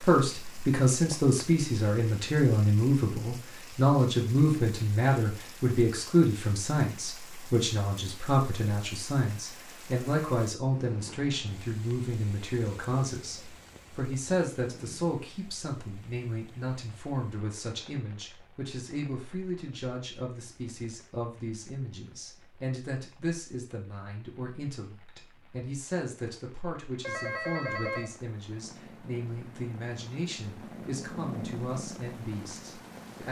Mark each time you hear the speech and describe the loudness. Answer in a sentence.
The speech can be heard from 0.0 to 33.2 s, getting quieter.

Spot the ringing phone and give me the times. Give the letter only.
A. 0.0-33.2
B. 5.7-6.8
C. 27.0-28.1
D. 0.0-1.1
C.